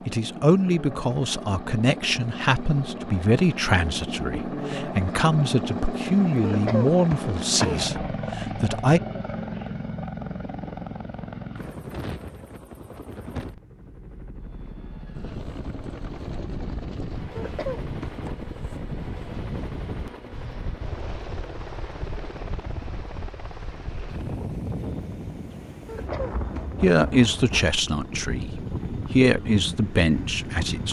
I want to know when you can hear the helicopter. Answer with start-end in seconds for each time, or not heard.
0.0-30.8.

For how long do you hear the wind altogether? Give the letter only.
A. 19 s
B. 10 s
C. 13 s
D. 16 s
D.